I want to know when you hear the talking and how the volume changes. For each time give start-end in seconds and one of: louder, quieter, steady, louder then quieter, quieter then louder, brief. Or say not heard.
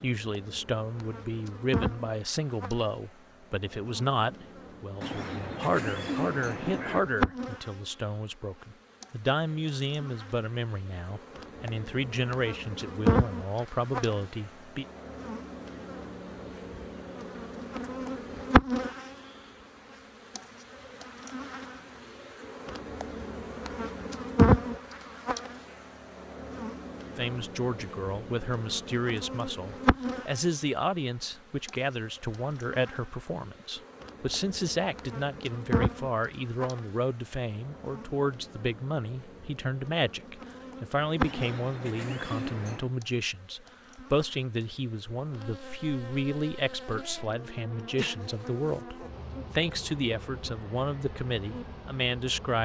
0.0-14.8 steady
27.1-52.6 steady.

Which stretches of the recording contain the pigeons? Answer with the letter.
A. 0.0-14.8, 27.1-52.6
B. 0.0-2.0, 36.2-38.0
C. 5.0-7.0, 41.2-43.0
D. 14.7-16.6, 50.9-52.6
C.